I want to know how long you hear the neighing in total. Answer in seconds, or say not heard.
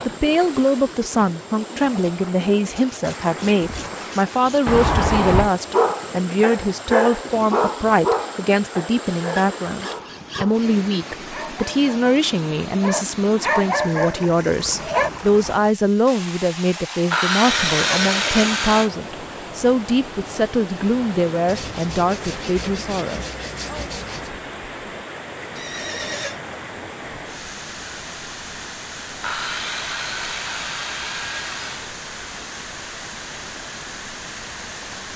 3 s.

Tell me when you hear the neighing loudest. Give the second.
5 s.